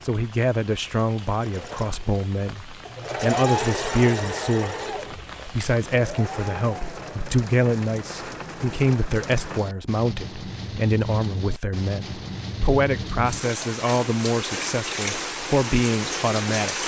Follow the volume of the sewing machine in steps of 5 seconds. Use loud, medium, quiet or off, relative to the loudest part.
loud, medium, off, off.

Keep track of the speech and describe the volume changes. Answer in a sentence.
The loudness of the speech stays about the same.